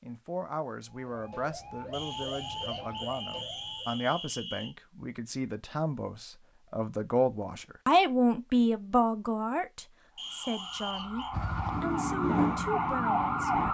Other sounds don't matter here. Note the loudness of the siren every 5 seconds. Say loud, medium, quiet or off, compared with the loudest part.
medium, off, loud.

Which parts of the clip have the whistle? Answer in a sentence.
The whistle can be heard from 1.9 to 4.8 s and from 10.2 to 11.3 s.